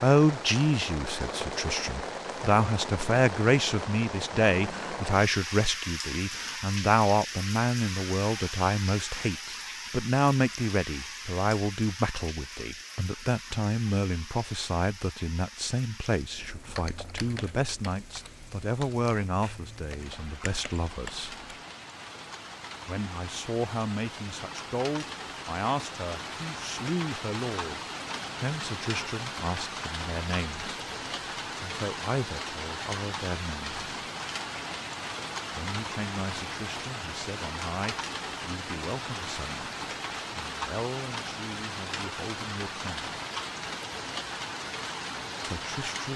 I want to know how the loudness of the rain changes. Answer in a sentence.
The volume of the rain goes down, then up.